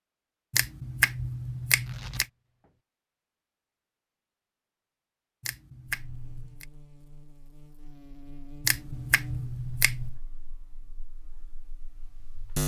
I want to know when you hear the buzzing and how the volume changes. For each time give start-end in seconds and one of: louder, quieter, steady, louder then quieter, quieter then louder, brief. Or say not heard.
5.8-12.6 louder then quieter.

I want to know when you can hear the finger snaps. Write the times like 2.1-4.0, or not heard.
0.5-2.2, 5.4-6.7, 8.7-10.2.